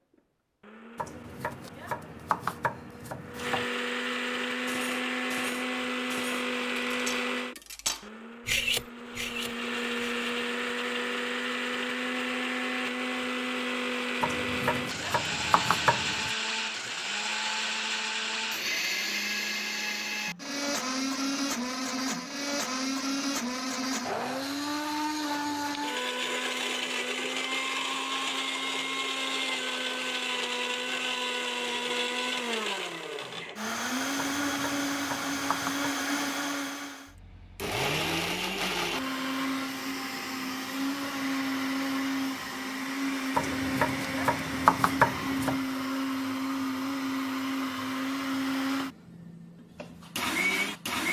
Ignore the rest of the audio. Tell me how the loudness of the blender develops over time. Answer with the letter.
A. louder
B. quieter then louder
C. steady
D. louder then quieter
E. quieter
C.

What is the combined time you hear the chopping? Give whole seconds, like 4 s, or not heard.
9 s.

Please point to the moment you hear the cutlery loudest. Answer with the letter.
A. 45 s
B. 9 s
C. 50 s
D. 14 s
B.